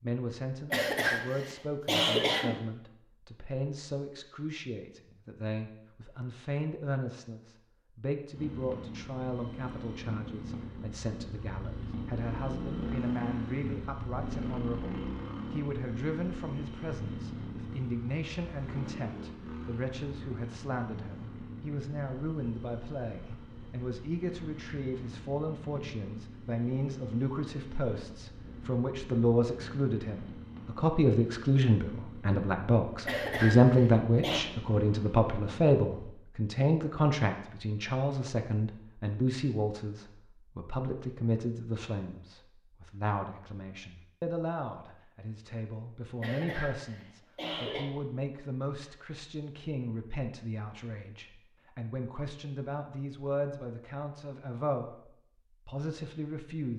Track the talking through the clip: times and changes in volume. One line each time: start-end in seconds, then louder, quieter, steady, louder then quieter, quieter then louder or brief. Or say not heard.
0.0-55.0 louder then quieter
55.6-56.7 brief.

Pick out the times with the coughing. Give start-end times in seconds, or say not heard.
0.7-2.6, 33.0-34.5, 46.2-47.9.